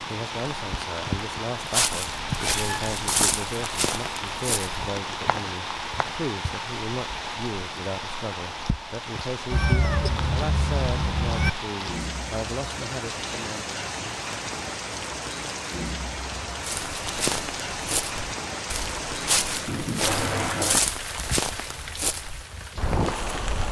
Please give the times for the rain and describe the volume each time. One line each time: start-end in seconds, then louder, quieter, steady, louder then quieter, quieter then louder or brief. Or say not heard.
0.0-23.6 steady.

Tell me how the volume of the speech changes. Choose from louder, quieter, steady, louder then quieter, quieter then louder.
steady.